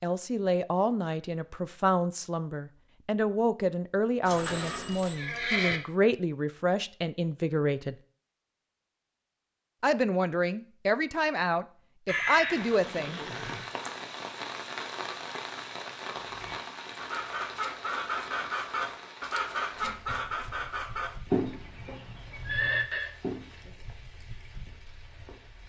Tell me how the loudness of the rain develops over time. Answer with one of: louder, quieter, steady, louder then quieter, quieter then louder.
quieter.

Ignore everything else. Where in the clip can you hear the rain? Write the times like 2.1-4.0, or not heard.
12.4-25.6.